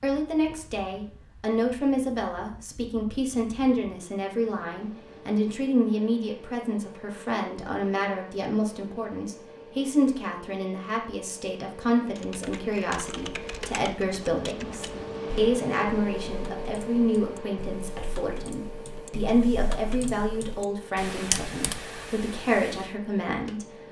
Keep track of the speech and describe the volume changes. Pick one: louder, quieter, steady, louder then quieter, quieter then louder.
steady.